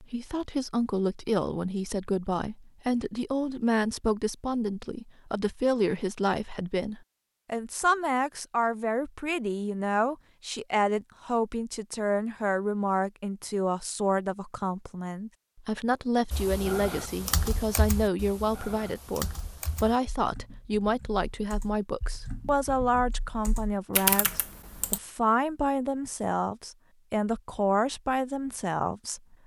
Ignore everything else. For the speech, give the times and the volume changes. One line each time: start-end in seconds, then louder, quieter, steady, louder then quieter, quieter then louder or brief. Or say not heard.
0.0-29.4 steady.